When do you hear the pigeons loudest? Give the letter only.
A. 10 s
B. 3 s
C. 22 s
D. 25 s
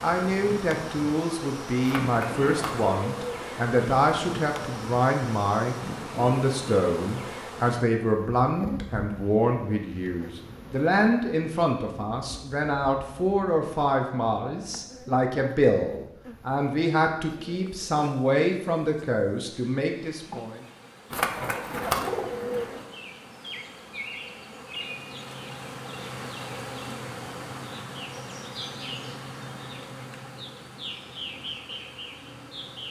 C.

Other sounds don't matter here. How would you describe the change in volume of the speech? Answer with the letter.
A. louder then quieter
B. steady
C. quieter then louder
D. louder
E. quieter
B.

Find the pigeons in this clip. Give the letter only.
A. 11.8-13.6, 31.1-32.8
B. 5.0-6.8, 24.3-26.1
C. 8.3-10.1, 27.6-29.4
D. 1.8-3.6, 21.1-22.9
D.